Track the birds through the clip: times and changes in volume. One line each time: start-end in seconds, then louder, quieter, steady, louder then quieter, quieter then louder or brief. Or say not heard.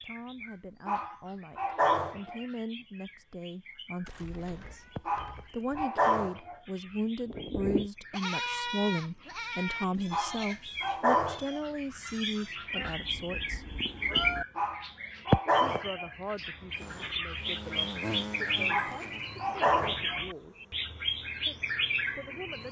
0.0-22.6 louder.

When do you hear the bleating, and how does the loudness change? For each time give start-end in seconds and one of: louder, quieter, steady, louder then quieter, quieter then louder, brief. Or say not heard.
7.2-12.9 quieter.